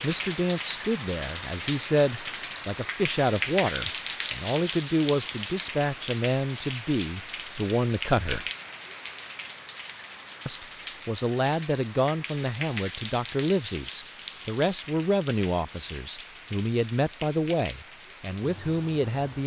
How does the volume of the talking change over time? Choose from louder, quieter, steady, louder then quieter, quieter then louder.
steady.